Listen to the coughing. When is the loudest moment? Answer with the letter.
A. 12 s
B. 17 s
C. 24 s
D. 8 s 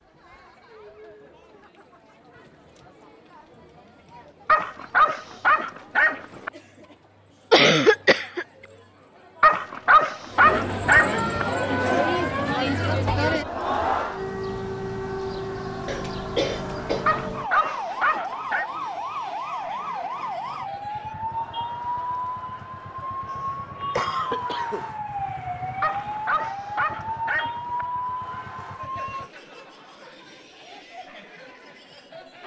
D.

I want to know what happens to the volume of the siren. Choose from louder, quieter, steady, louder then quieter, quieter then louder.
steady.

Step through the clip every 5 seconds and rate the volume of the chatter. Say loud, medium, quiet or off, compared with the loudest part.
quiet, quiet, loud, quiet, quiet, quiet, quiet.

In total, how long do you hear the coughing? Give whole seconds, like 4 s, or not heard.
4 s.